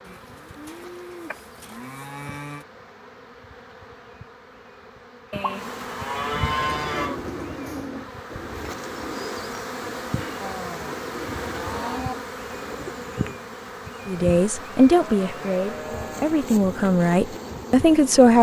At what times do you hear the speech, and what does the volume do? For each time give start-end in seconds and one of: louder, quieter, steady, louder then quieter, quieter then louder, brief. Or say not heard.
14.1-18.3 quieter then louder.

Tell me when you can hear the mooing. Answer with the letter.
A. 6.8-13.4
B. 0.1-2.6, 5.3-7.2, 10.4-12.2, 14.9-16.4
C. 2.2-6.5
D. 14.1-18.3
B.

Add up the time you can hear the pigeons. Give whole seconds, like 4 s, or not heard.
7 s.